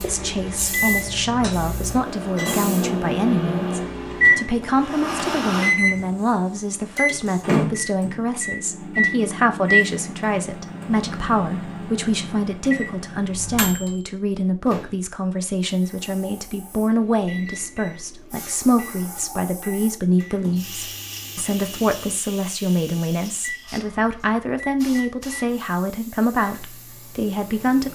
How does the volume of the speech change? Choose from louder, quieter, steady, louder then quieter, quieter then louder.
steady.